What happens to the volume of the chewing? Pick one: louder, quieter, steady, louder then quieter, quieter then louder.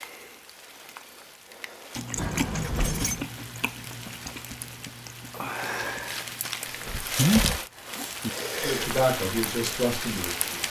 quieter then louder.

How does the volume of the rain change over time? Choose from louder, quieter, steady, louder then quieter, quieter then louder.
louder.